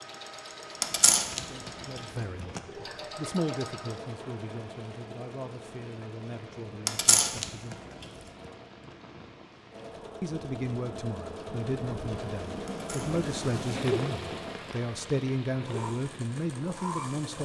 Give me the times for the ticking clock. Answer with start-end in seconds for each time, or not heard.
not heard.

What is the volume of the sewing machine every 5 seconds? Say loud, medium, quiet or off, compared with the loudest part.
loud, medium, loud, loud.